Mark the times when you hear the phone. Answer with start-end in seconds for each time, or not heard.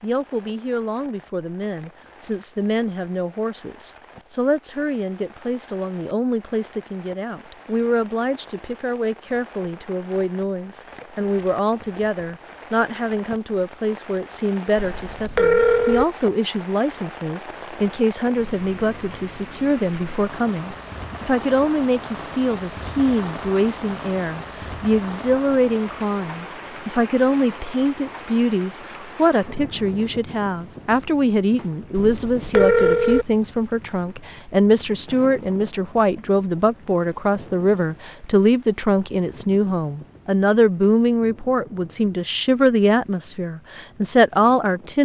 14.8-16.1, 31.9-33.2.